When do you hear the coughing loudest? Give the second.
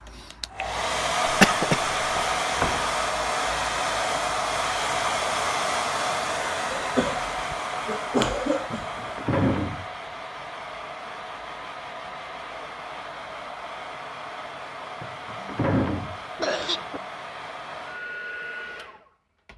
2 s.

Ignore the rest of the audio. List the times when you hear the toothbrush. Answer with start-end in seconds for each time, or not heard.
not heard.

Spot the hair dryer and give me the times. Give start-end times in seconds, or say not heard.
0.0-19.5.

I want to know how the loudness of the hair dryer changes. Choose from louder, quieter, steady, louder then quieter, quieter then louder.
quieter.